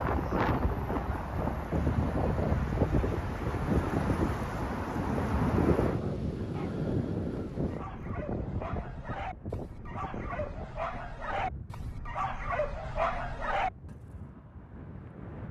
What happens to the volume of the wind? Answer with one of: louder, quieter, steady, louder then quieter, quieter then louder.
quieter.